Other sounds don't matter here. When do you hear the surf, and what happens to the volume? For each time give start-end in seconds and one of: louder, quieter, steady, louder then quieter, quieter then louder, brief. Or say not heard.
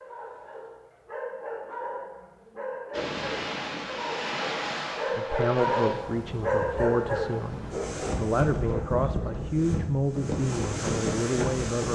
2.9-11.9 quieter then louder.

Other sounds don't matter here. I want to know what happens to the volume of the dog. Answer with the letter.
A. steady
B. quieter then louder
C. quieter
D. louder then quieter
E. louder
D.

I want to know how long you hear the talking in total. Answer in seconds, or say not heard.
7 s.